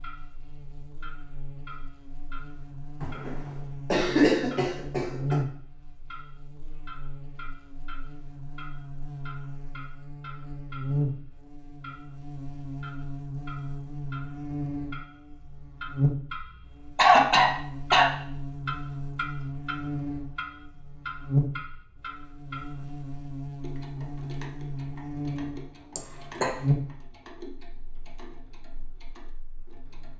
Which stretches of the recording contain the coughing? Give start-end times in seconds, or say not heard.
3.0-5.4, 16.9-18.1, 25.9-26.6.